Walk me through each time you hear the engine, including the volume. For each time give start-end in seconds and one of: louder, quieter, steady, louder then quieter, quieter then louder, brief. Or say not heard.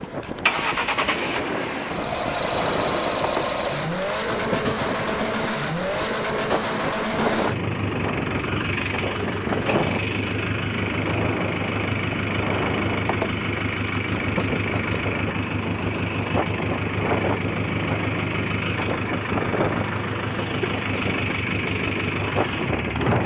0.0-23.2 steady.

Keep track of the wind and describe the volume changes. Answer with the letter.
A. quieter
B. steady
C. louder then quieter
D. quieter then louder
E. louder
B.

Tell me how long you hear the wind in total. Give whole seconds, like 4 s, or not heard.
23 s.